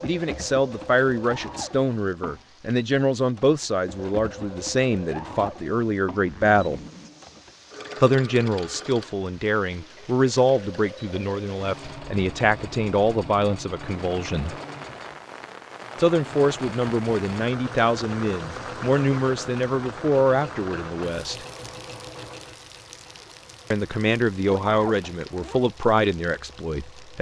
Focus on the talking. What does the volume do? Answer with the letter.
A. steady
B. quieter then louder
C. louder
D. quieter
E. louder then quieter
A.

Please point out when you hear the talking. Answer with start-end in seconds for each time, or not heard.
0.0-6.8, 8.0-14.6, 15.9-21.4, 23.7-27.1.